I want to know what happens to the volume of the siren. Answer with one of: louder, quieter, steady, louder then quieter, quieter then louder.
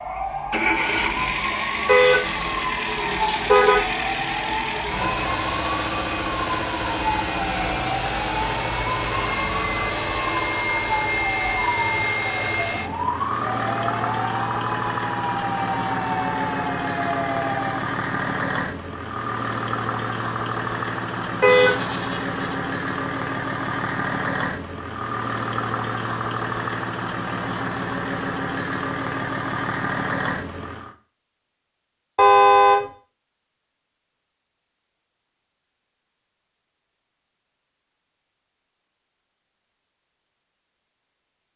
steady.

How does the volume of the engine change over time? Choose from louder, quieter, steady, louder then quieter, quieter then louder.
steady.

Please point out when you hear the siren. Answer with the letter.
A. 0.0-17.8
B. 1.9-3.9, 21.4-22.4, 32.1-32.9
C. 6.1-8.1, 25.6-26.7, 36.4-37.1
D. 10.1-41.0
A.